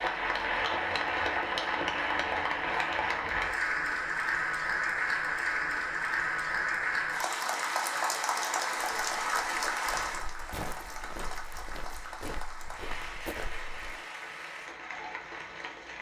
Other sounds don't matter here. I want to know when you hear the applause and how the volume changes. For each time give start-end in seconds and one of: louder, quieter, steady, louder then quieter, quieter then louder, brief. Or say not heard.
0.0-15.9 quieter.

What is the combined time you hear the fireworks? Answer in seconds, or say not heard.
not heard.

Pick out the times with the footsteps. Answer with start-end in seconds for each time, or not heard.
8.8-13.9.